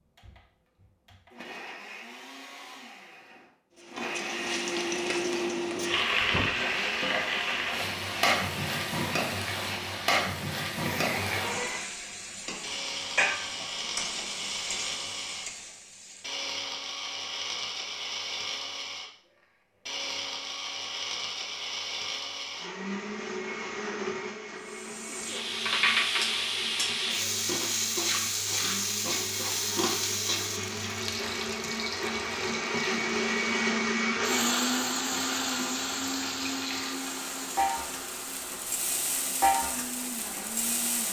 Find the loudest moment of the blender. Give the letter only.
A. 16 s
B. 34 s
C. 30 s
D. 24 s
B.